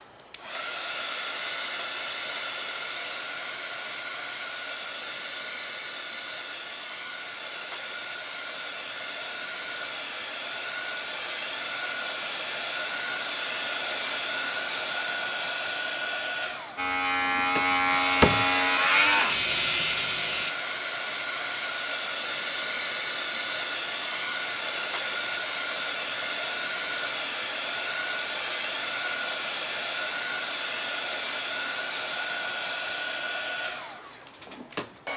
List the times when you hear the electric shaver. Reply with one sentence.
The electric shaver can be heard from 16.8 to 20.6 s.